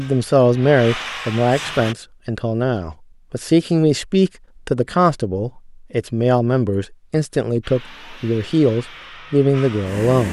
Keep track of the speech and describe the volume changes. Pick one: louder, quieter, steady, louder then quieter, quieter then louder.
steady.